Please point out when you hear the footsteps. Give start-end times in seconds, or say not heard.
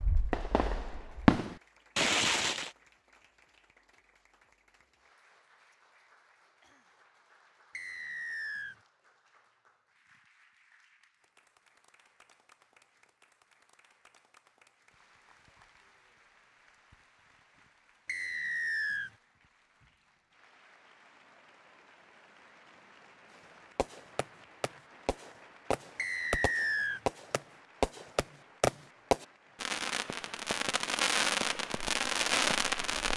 not heard.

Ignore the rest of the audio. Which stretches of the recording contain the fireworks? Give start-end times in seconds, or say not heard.
0.0-2.7, 23.8-33.1.